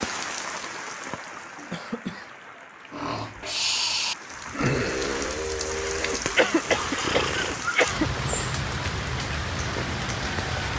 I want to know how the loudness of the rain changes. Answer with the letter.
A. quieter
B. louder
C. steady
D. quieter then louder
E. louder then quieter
D.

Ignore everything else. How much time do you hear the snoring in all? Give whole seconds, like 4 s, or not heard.
6 s.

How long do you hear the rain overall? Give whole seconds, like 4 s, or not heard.
11 s.